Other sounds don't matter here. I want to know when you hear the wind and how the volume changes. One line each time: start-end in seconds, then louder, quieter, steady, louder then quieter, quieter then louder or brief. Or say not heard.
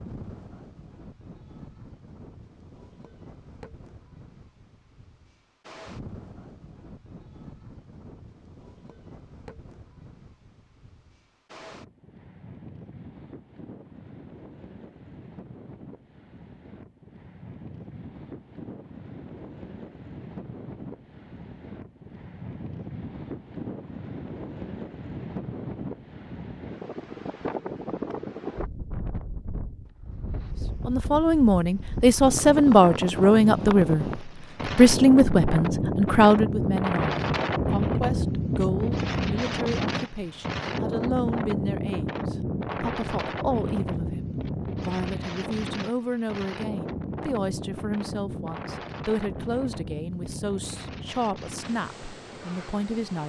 0.0-53.2 louder then quieter.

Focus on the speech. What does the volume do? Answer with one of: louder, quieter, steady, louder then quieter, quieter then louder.
quieter.